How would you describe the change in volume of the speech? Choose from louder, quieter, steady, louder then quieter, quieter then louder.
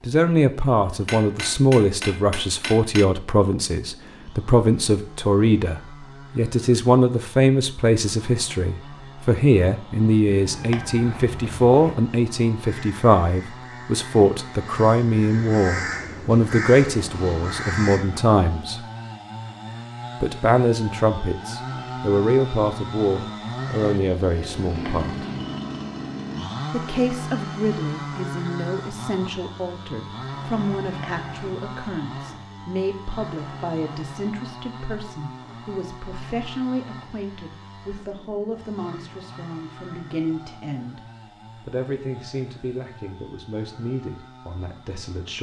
quieter.